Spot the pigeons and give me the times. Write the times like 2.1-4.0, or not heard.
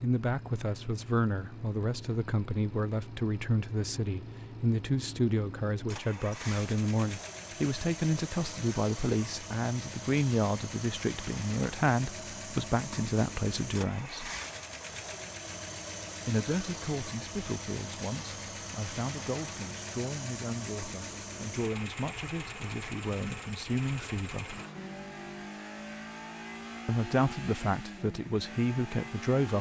not heard.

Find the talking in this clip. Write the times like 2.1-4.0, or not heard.
0.0-14.3, 16.2-24.6, 26.9-29.5.